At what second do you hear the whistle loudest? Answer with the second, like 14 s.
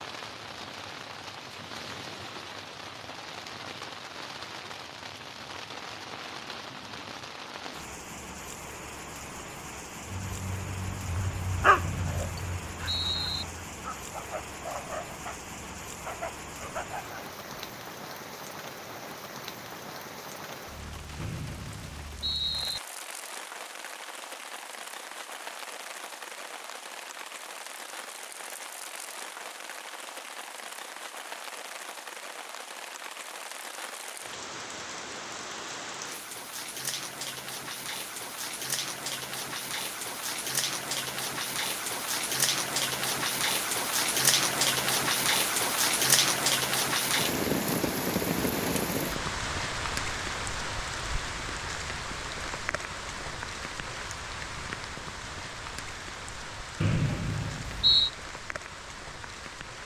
58 s.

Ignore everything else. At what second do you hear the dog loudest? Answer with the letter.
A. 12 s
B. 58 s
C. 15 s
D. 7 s
A.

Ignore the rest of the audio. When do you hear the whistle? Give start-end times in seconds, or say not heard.
11.8-13.4, 21.1-22.8, 56.8-58.1.